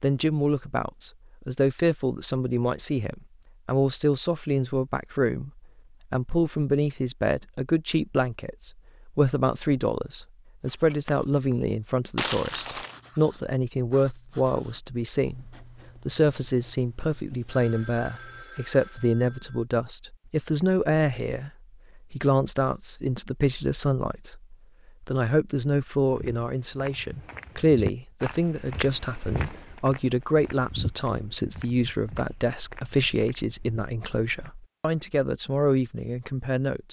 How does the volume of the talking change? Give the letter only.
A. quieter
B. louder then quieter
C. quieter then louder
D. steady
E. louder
D.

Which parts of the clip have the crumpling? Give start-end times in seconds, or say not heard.
12.2-13.0.